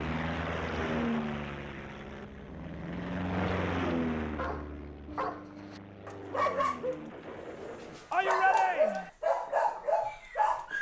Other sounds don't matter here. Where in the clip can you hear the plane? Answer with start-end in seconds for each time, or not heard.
0.0-8.2.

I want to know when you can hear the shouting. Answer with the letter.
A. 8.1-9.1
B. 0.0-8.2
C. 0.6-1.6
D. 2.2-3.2
A.